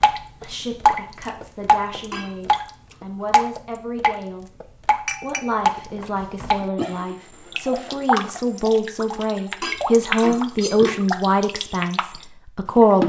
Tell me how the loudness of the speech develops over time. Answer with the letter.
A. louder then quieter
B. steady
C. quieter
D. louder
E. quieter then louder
D.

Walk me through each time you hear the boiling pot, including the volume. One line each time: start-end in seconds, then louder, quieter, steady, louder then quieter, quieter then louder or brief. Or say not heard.
not heard.